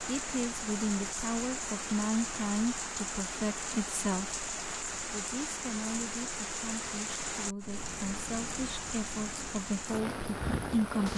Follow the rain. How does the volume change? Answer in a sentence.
The volume of the rain stays about the same.